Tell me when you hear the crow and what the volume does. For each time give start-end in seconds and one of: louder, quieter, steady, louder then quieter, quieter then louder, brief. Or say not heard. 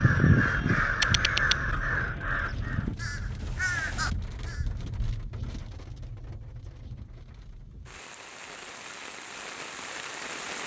0.0-4.7 quieter then louder.